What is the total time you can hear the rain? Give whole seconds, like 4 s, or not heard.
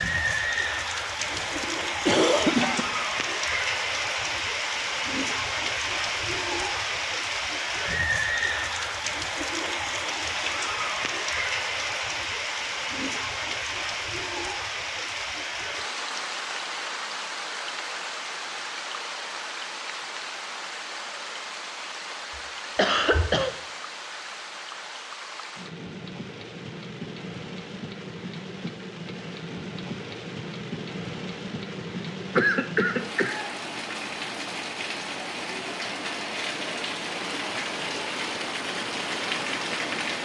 40 s.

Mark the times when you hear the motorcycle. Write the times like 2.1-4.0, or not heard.
not heard.